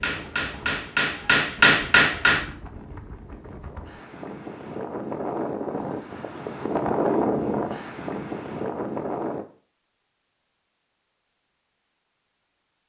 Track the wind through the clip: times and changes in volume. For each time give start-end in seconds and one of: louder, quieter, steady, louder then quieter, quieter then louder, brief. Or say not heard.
0.0-9.4 louder.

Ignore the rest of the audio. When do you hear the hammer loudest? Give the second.
2 s.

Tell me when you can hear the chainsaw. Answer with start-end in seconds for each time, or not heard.
not heard.